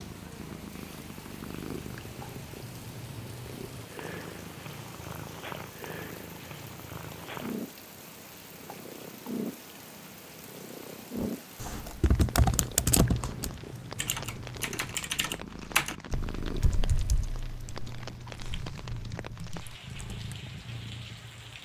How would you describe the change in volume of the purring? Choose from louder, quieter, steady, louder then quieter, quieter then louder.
steady.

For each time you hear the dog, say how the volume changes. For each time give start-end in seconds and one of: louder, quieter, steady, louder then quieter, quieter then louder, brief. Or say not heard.
not heard.